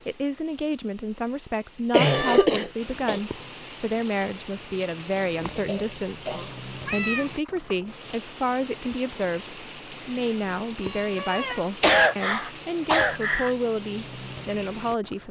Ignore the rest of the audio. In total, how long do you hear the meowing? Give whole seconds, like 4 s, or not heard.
3 s.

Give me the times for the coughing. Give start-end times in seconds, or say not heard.
1.9-3.2, 5.2-6.5, 11.5-13.5.